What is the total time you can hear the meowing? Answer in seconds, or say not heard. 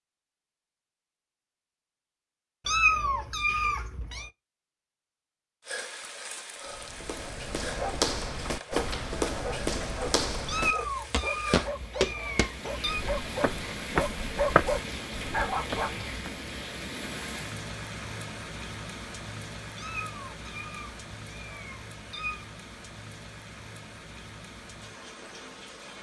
7 s.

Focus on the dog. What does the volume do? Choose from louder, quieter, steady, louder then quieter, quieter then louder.
louder.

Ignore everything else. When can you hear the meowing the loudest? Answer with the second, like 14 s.
3 s.